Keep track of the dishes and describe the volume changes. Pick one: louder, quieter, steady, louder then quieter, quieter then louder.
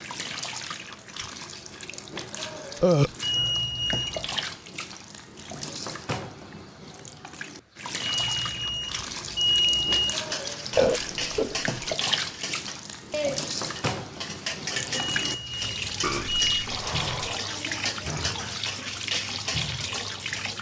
steady.